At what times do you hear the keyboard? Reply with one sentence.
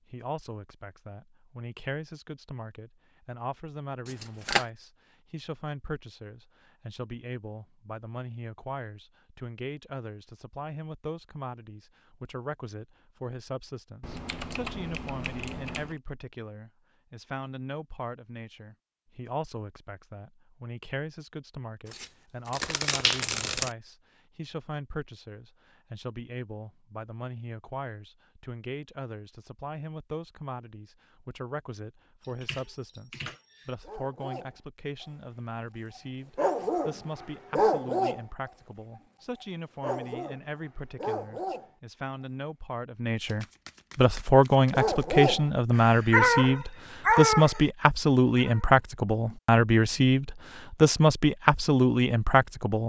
The keyboard can be heard from 14.0 to 16.0 s and from 32.2 to 33.8 s.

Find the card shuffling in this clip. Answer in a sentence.
The card shuffling can be heard from 4.0 to 4.7 s, from 21.9 to 23.8 s and from 43.2 to 45.2 s.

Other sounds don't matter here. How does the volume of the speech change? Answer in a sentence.
The volume of the speech goes up.